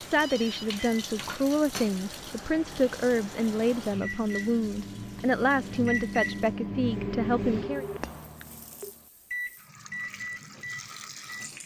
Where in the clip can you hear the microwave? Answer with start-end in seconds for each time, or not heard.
0.0-11.6.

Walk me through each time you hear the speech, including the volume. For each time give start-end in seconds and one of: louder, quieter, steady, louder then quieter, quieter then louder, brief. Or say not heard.
0.0-7.8 steady.